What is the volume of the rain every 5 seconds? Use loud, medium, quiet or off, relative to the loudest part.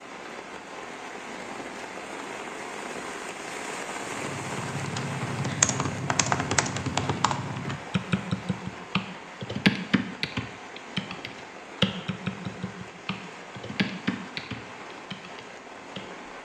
loud, loud, medium, medium.